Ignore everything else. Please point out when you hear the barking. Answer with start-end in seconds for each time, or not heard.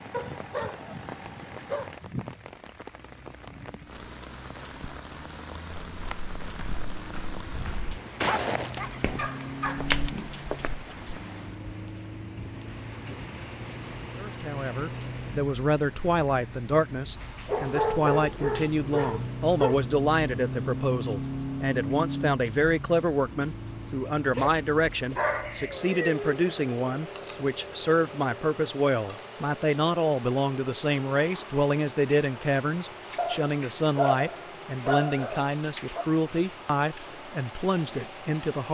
0.1-1.9, 8.2-9.8, 17.4-19.8, 24.4-26.2, 33.1-36.0.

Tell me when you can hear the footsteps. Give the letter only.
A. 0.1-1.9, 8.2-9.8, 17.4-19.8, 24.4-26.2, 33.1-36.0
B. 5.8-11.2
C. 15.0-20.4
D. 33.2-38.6
B.